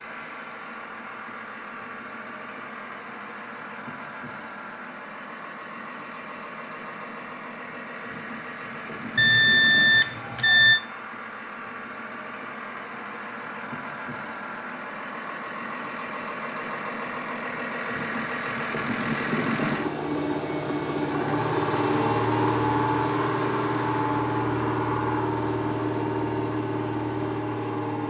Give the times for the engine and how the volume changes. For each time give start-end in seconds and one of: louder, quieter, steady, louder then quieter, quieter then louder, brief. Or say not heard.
0.0-28.0 louder.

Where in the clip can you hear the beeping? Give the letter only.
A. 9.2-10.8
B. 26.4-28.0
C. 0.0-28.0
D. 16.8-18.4
A.